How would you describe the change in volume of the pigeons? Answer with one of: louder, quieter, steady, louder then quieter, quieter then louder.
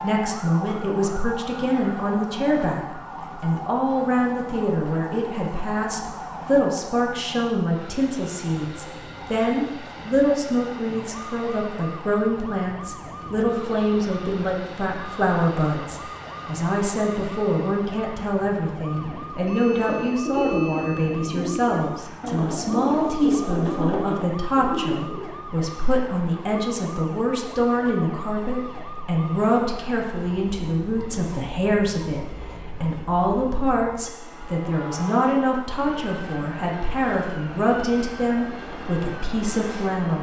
steady.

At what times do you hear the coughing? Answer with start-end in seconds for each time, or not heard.
not heard.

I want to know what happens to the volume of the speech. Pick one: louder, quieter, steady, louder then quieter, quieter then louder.
steady.